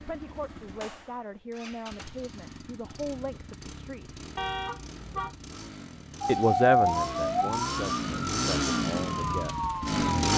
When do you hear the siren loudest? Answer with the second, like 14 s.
7 s.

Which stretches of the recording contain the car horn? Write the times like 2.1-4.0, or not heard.
4.3-5.3.